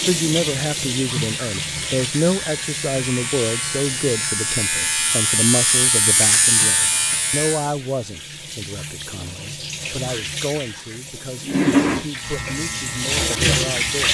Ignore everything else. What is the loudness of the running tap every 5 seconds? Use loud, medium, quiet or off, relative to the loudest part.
medium, quiet, loud.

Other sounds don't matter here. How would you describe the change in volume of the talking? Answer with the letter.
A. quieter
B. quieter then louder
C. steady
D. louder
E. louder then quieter
A.